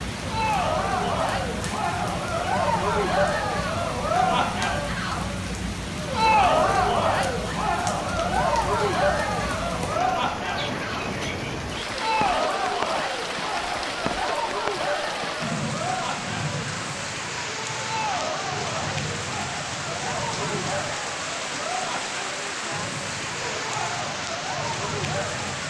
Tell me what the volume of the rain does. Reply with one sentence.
The loudness of the rain stays about the same.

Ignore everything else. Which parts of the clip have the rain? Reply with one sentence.
You can hear the rain from 0.0 to 25.6 s.